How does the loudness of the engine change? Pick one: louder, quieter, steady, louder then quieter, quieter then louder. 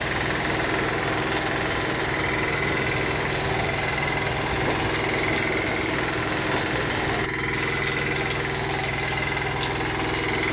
steady.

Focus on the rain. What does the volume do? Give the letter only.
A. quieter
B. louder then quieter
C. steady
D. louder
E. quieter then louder
C.